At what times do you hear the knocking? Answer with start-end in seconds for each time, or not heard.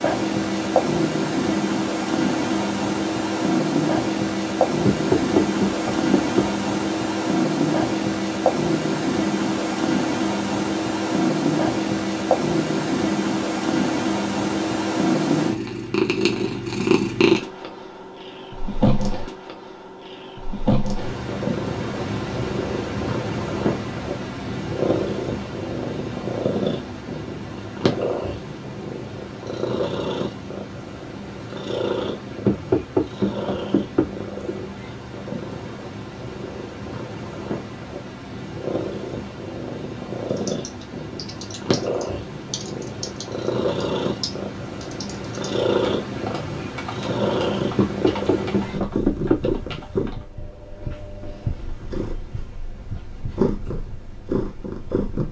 4.8-6.5, 32.5-34.1, 47.8-49.5.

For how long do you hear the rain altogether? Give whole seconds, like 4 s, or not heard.
not heard.